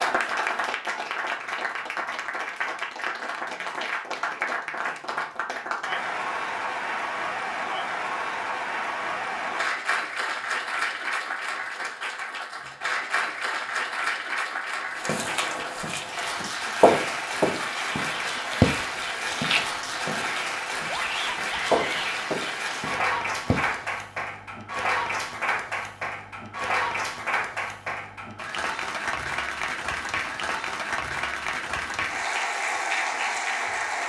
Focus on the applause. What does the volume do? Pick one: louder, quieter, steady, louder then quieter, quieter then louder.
steady.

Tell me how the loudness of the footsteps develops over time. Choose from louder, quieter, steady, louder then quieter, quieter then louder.
quieter.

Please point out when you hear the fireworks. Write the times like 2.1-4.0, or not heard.
not heard.